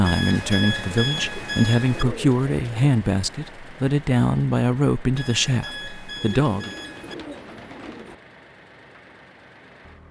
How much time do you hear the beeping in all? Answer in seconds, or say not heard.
4 s.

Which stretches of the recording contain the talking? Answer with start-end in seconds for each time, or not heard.
0.0-6.7.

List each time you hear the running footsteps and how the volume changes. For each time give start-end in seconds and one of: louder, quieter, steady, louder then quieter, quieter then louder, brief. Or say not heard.
not heard.